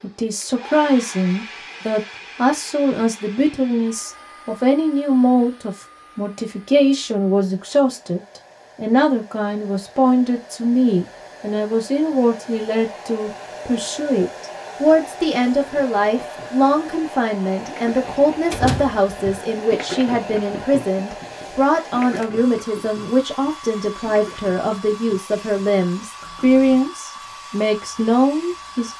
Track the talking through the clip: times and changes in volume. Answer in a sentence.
You can hear the talking from 0.0 to 28.9 s, at a steady volume.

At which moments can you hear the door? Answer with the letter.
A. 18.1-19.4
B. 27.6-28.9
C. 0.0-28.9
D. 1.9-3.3
A.